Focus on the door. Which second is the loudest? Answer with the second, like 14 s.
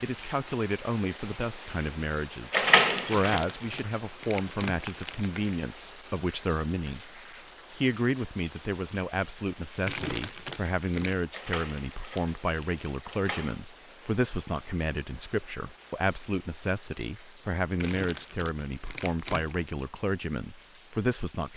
3 s.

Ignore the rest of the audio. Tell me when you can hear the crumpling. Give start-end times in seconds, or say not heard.
3.1-5.6, 9.8-11.2, 17.8-19.6.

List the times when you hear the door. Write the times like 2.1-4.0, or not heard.
2.5-3.5, 11.3-13.6.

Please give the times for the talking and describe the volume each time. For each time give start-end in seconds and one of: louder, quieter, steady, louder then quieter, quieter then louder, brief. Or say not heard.
0.0-21.5 steady.